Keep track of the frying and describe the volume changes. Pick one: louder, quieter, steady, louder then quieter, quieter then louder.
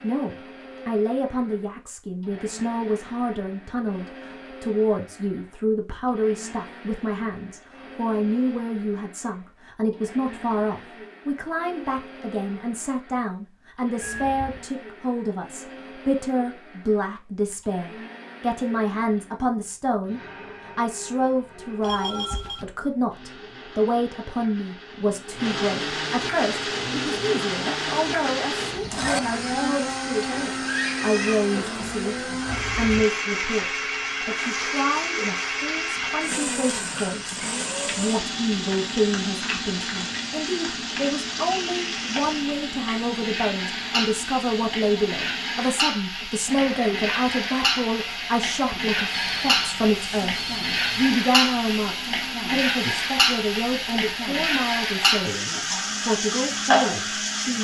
louder.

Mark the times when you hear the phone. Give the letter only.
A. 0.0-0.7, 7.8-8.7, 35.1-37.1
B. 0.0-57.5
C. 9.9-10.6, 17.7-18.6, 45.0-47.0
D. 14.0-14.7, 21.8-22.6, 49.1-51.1
D.